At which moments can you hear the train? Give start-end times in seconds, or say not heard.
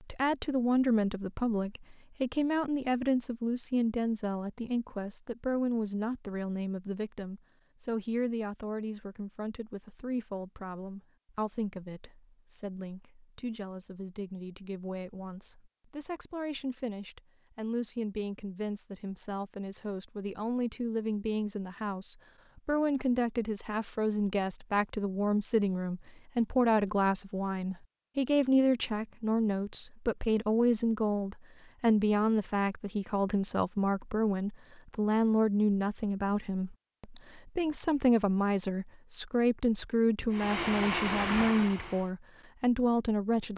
40.3-42.1.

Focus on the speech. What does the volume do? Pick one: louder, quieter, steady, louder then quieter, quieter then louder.
quieter then louder.